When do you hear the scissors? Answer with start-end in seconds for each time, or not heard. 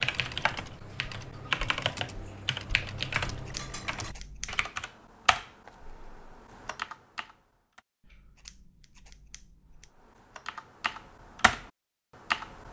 3.4-4.7, 8.0-9.9.